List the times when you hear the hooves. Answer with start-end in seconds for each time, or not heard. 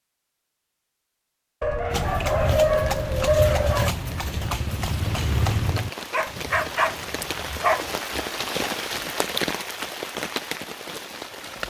1.9-8.0.